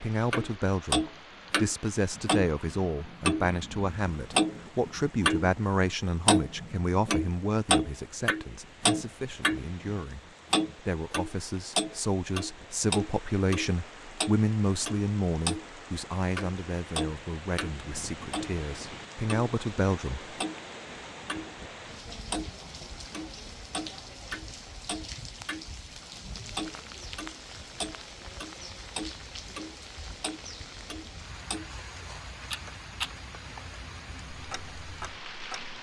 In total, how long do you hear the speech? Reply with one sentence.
The speech can be heard for 20 seconds in total.